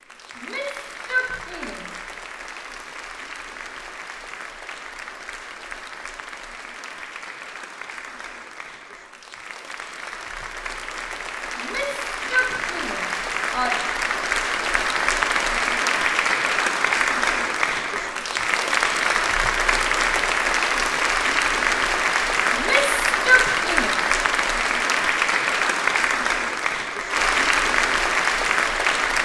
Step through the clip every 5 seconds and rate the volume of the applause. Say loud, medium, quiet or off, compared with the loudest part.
quiet, quiet, medium, loud, loud, loud.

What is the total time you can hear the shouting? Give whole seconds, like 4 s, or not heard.
5 s.